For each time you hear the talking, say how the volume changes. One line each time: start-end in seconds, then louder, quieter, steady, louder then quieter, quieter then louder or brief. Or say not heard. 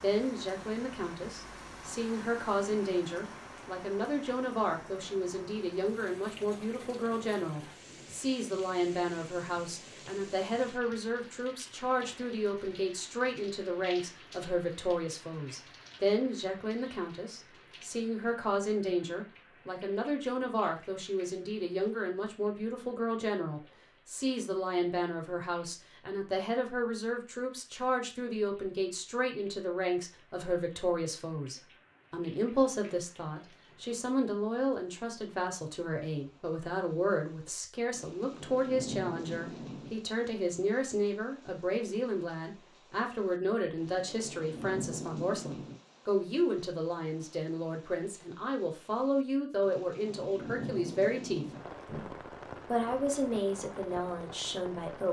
0.0-55.0 steady.